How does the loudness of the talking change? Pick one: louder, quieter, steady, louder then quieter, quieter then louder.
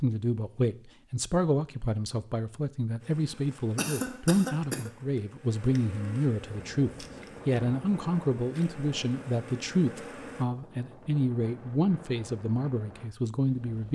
steady.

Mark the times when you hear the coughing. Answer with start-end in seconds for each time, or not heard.
3.8-4.9.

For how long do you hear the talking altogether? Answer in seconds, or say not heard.
14 s.